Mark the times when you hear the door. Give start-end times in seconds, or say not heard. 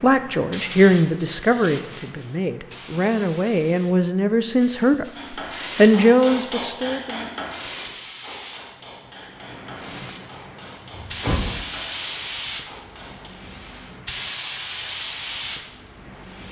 10.9-11.5.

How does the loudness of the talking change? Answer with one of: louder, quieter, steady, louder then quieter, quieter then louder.
quieter then louder.